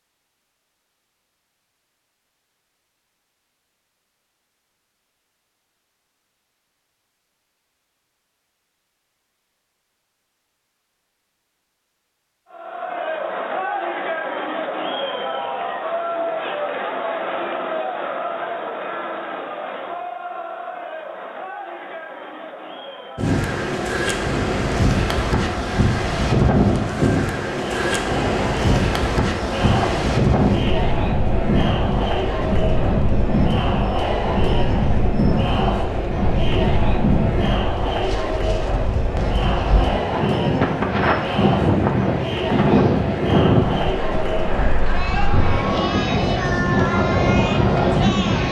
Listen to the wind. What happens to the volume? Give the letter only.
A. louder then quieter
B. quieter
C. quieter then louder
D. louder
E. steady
E.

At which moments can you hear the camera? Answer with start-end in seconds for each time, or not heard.
not heard.